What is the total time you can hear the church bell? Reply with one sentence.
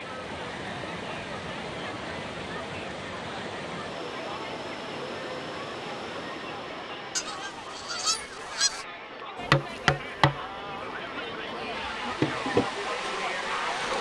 You can't hear the church bell here.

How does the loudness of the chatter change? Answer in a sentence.
The volume of the chatter goes up.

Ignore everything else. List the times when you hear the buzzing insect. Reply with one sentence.
The buzzing insect can be heard from 9.3 to 13.9 s.